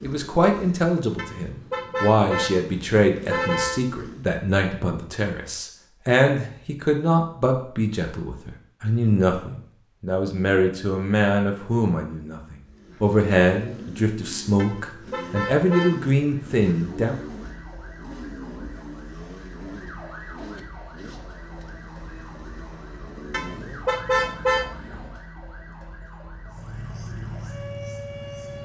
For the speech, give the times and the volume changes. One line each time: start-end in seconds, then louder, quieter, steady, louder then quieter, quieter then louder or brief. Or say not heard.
0.0-17.1 steady.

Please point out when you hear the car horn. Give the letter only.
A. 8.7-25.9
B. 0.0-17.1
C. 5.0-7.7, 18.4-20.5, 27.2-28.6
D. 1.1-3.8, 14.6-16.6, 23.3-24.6
D.